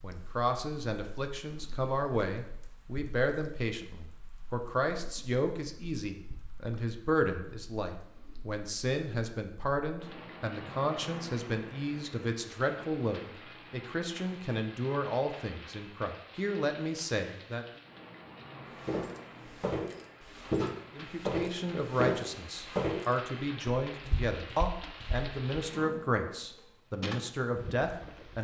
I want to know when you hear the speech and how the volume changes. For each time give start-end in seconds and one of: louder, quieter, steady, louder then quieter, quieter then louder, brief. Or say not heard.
0.0-17.6 steady
20.9-28.3 steady.